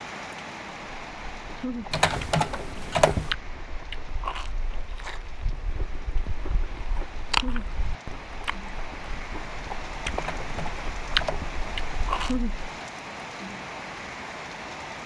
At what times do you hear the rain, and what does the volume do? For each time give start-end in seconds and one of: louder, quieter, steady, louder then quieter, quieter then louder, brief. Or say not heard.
0.0-15.0 quieter then louder.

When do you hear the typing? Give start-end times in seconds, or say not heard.
1.9-3.4, 10.2-11.6.